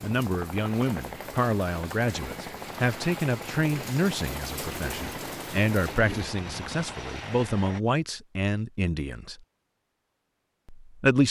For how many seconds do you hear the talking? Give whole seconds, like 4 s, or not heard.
10 s.